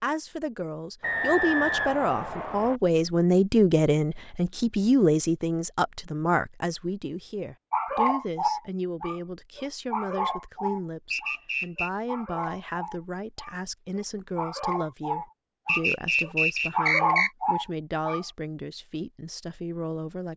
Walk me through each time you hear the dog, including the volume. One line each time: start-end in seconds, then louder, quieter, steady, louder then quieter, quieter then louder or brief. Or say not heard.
7.7-18.2 quieter then louder.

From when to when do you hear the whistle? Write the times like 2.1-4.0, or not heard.
1.0-2.8, 11.1-11.9, 15.7-17.3.